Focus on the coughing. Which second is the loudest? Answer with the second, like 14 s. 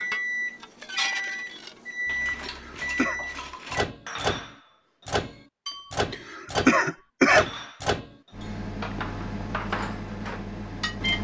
7 s.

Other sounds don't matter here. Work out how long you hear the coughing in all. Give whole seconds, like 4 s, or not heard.
2 s.